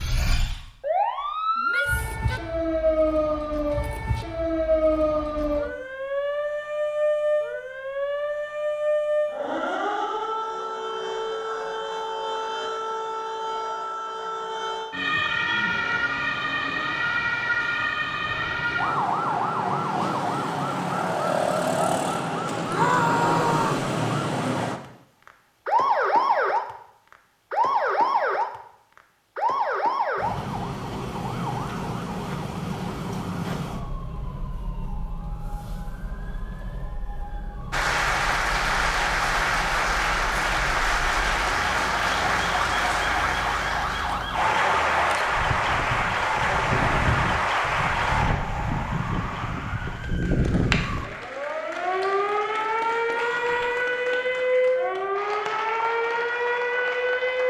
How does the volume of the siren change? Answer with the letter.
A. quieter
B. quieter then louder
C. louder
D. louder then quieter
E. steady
B.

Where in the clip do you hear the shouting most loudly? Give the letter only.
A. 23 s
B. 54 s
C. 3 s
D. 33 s
A.